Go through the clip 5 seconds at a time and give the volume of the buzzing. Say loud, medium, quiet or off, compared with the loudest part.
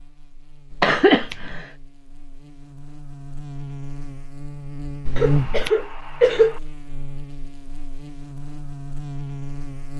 medium, loud.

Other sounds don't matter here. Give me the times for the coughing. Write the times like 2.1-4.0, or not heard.
0.8-1.6, 5.2-6.6.